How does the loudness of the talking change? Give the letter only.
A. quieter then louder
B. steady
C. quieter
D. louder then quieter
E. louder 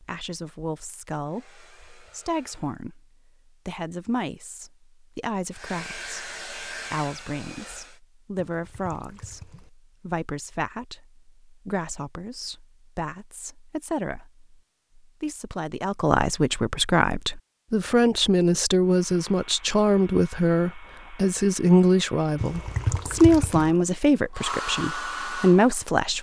E.